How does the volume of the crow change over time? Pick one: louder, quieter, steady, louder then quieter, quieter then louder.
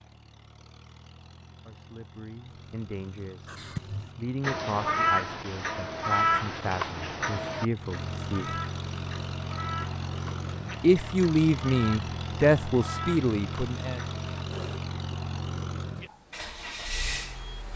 quieter.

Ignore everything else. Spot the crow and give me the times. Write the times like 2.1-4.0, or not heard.
3.5-14.8.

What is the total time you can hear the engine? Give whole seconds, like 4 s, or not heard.
18 s.